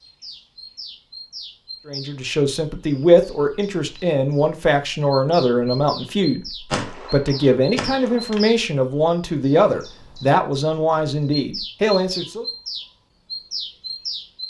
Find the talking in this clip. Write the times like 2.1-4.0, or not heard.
1.9-12.4.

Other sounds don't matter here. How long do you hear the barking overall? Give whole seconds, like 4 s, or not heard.
not heard.